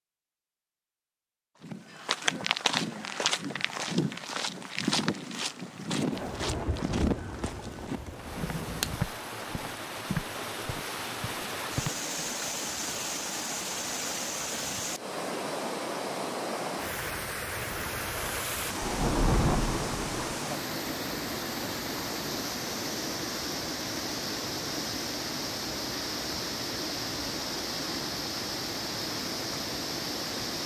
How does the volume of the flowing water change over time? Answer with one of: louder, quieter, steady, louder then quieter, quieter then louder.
steady.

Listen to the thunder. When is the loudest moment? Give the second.
19 s.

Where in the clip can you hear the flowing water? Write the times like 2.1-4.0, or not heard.
8.1-30.6.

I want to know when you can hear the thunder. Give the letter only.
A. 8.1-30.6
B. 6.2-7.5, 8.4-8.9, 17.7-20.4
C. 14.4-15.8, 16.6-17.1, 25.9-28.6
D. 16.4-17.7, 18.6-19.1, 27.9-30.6
B.